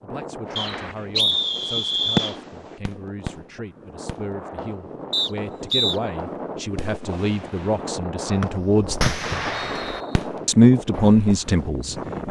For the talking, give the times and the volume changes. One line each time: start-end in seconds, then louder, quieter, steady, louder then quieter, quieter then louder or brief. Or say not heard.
0.0-9.2 louder
10.4-12.2 brief.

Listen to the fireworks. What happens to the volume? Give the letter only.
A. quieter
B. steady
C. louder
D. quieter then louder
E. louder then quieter
D.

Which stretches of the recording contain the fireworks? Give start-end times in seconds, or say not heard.
0.5-11.2.